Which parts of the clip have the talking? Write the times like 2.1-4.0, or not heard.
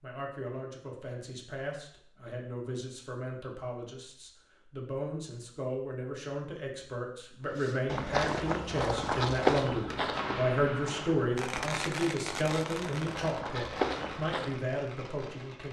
0.0-15.6.